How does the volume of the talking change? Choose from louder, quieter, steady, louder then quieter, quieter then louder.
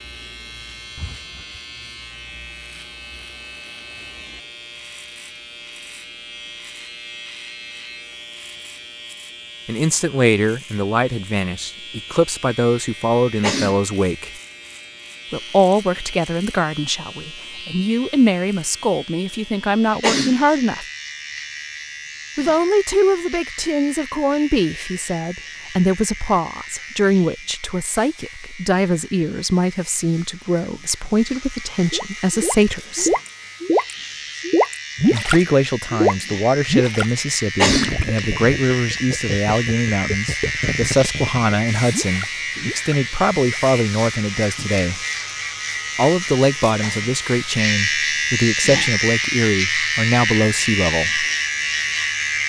steady.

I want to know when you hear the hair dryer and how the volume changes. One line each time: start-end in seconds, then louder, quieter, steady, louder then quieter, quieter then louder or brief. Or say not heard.
not heard.